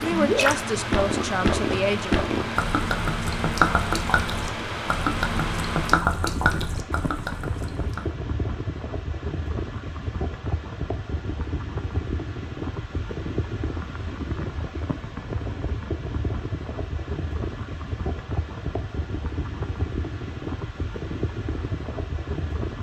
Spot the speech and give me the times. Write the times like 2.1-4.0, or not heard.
0.0-2.1.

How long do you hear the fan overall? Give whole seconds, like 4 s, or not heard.
23 s.